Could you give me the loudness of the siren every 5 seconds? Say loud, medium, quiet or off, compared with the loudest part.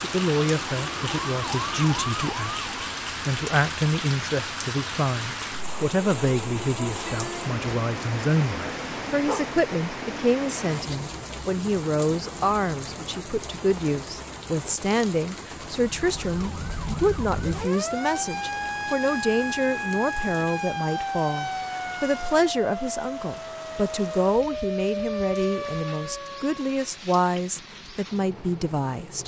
loud, off, off, loud, loud, loud.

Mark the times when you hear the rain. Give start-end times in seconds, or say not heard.
0.0-29.2.